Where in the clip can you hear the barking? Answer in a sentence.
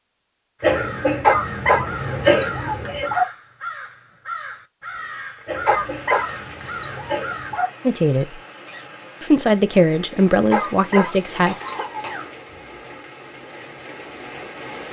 The barking can be heard from 1.2 to 3.2 s, from 5.7 to 7.7 s and from 10.5 to 12.2 s.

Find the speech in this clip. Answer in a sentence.
You can hear the speech from 7.8 to 8.4 s and from 9.2 to 11.6 s.